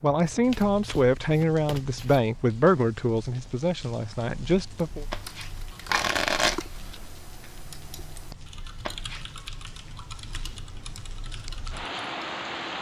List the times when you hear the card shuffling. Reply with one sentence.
The card shuffling can be heard from 0.3 to 2.2 s, from 5.1 to 6.7 s and from 8.8 to 9.3 s.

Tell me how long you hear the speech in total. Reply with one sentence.
The speech can be heard for 5 seconds in total.